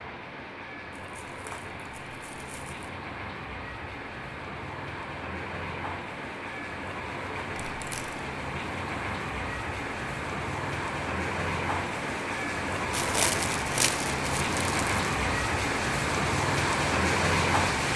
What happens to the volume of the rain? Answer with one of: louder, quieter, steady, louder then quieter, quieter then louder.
louder.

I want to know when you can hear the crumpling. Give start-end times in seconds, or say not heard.
0.9-2.9, 7.5-8.2, 12.9-14.9.